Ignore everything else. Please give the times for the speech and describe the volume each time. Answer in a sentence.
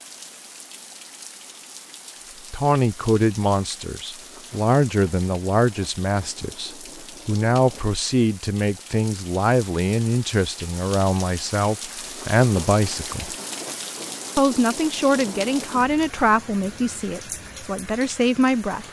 You can hear the speech from 2.5 to 13.3 s, at a steady volume; and from 14.3 to 18.8 s, getting quieter then louder.